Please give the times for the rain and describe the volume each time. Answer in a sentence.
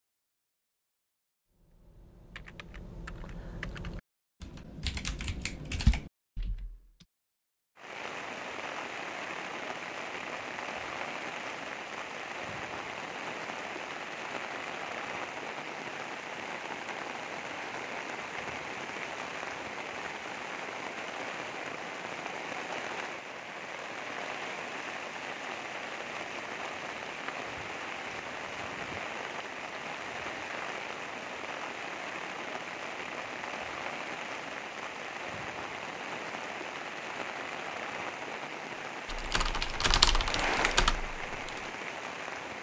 The rain can be heard from 7.8 to 42.5 s, at a steady volume.